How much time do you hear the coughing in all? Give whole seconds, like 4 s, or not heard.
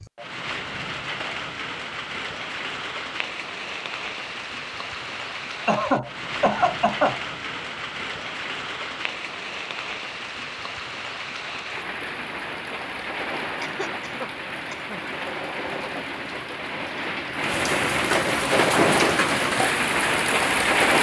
3 s.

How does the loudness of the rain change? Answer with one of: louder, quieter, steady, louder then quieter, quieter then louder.
louder.